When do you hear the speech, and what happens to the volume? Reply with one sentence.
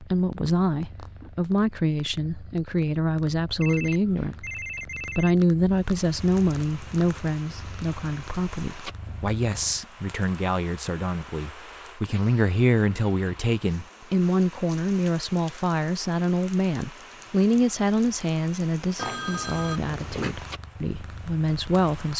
The speech can be heard from 0.0 to 22.1 s, at a steady volume.